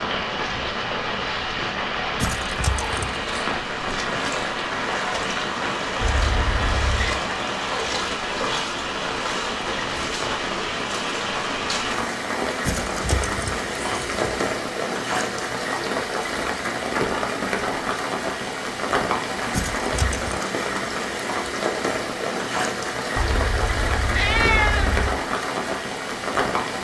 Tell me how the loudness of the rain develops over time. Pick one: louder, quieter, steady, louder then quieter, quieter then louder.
steady.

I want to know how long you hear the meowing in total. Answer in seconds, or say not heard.
3 s.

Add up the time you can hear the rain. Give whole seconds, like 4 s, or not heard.
27 s.